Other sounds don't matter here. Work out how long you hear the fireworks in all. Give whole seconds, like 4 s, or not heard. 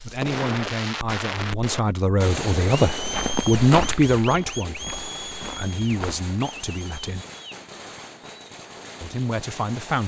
10 s.